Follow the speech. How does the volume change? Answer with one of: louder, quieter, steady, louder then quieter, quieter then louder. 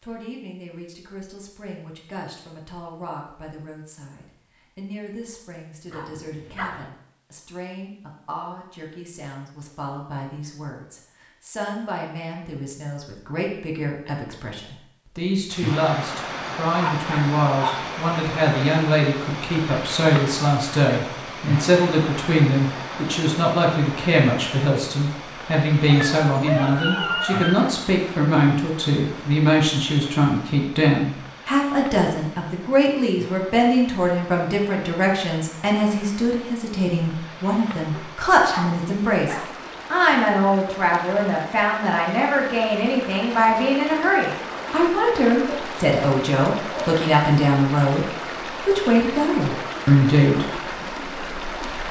louder.